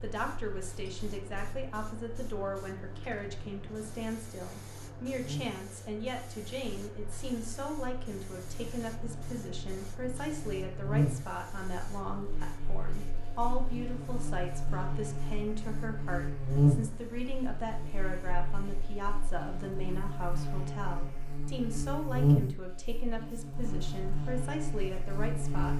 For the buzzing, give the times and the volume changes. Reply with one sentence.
The buzzing can be heard from 0.0 to 25.7 s, getting louder.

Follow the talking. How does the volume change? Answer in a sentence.
The volume of the talking stays about the same.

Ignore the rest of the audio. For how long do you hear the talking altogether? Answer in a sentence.
You can hear the talking for 26 seconds altogether.